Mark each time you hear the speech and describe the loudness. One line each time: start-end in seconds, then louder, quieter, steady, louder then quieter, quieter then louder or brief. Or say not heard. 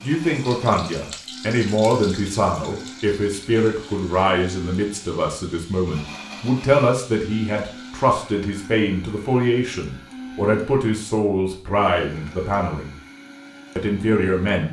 0.0-12.9 steady
13.8-14.6 brief.